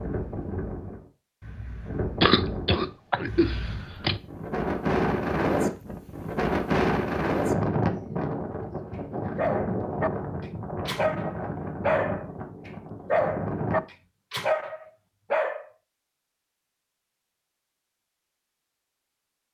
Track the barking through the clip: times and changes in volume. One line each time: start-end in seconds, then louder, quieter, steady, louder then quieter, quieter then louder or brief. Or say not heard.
9.3-10.1 brief
10.8-15.7 quieter then louder.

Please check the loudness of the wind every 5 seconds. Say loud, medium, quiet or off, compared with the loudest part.
medium, loud, medium, off.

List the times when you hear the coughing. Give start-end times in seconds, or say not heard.
2.2-4.2.